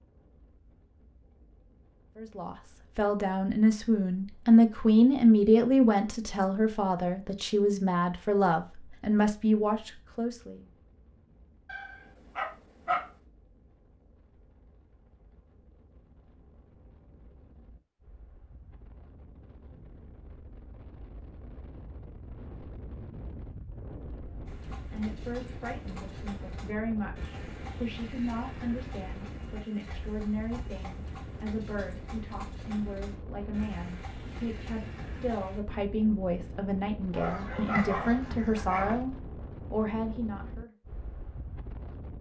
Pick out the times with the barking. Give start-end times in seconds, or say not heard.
11.7-13.1, 37.1-39.0.